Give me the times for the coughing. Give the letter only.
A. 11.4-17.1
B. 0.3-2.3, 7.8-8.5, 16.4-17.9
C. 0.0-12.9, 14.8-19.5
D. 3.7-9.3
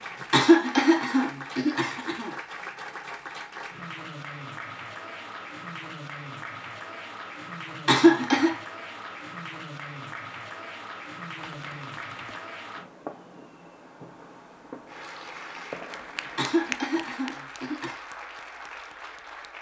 B.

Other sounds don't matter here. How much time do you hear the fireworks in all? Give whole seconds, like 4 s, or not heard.
6 s.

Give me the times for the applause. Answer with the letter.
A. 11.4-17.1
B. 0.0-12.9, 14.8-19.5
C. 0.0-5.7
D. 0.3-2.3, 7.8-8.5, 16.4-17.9
B.